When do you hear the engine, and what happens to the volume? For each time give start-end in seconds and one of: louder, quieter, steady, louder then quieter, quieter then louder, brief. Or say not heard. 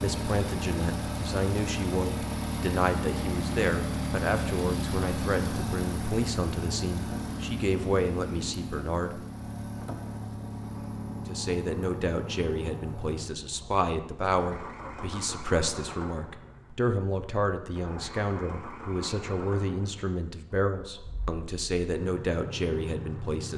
0.0-23.5 quieter.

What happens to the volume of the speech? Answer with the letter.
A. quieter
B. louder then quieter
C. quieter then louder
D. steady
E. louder
D.